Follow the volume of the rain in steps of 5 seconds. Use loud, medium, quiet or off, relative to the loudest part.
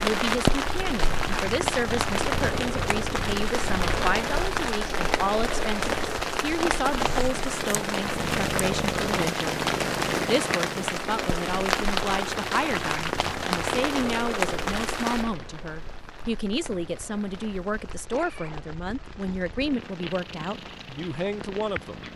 loud, loud, loud, quiet, quiet.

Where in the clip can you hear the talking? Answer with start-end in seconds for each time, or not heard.
0.0-9.6, 10.2-22.1.